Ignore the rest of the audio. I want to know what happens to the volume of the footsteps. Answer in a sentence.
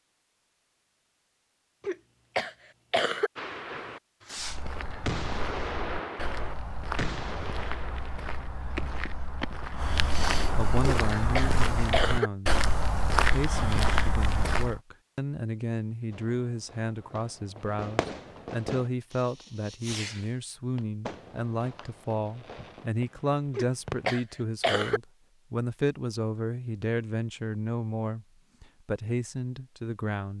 The loudness of the footsteps goes up.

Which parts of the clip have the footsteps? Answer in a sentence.
The footsteps can be heard from 4.3 to 14.8 s.